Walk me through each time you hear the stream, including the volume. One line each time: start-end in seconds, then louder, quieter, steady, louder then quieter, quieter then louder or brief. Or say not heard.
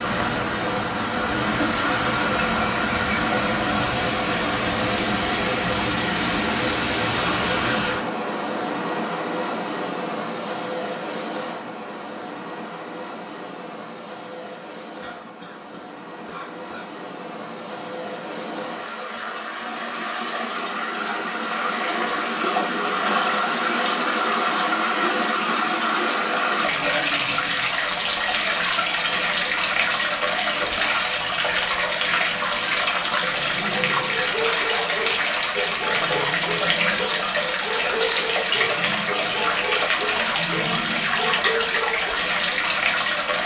0.0-43.4 quieter then louder.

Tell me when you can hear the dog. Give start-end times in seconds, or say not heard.
34.0-42.1.